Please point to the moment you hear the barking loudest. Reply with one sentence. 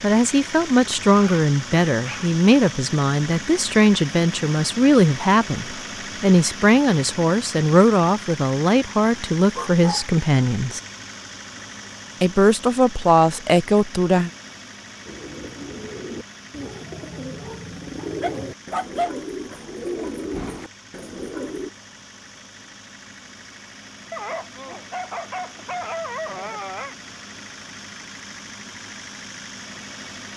The volume of the barking peaks at 19 seconds.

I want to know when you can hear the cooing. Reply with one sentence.
You can hear the cooing from 15.1 to 21.7 s.